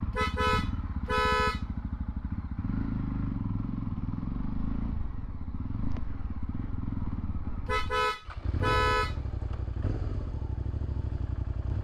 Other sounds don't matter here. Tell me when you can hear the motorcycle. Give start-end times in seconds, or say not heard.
0.0-11.7.